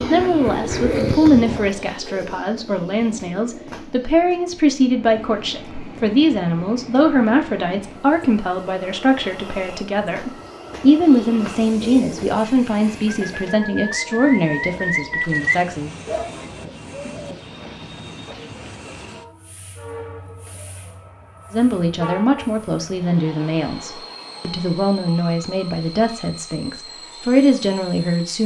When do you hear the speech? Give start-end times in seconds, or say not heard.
0.1-15.9, 21.5-28.4.